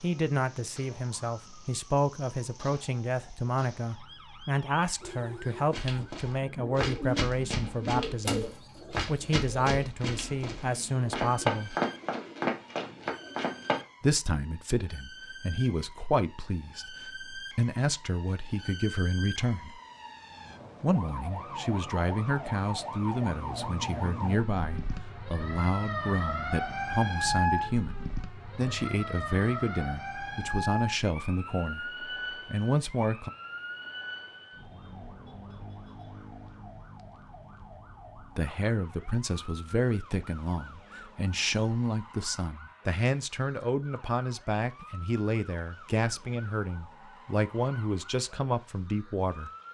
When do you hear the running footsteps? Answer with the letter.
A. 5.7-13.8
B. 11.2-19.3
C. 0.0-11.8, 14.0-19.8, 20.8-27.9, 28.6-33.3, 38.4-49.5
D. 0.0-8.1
A.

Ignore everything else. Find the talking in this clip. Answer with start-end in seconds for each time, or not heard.
0.0-11.8, 14.0-19.8, 20.8-27.9, 28.6-33.3, 38.4-49.5.